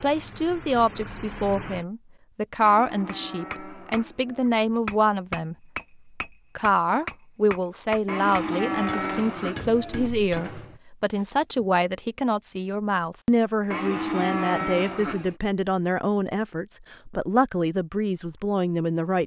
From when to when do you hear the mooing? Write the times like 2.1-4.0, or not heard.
2.6-4.5, 8.1-10.1, 13.7-15.3.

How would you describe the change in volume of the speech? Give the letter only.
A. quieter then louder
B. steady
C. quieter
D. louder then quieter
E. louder
B.